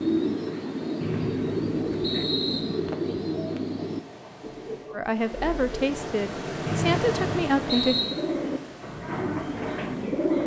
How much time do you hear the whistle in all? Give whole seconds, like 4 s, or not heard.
3 s.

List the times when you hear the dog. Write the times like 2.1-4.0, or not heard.
not heard.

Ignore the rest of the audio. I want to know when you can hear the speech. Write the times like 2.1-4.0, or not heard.
4.9-8.0.